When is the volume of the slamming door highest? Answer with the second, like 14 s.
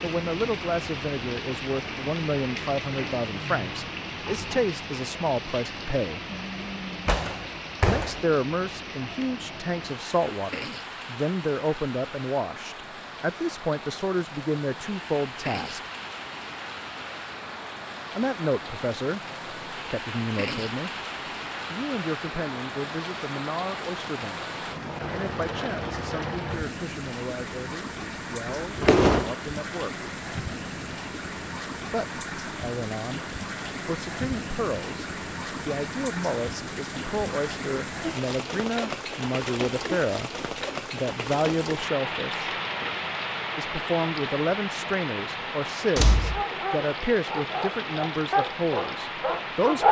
29 s.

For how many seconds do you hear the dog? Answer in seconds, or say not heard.
4 s.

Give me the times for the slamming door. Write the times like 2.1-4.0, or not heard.
7.0-8.2, 28.0-29.4, 46.0-46.5.